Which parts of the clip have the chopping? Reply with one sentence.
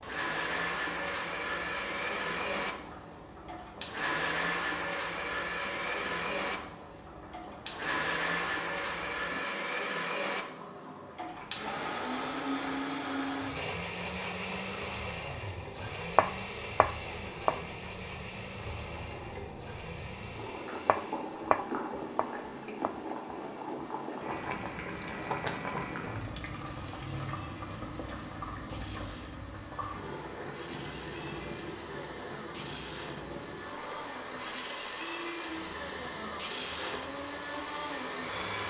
The chopping can be heard from 16.1 to 17.6 s and from 20.9 to 22.9 s.